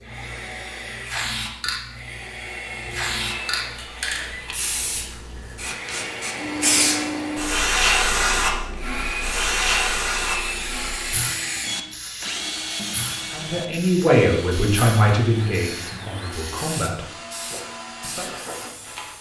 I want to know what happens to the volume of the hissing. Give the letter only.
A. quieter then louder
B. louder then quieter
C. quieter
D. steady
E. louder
B.